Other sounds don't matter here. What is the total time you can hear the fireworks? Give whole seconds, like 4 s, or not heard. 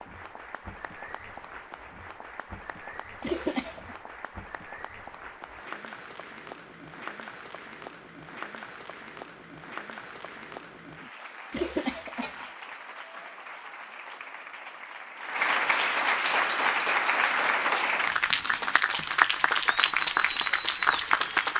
not heard.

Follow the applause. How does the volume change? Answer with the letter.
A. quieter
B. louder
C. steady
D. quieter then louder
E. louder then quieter
B.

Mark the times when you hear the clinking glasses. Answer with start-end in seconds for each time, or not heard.
not heard.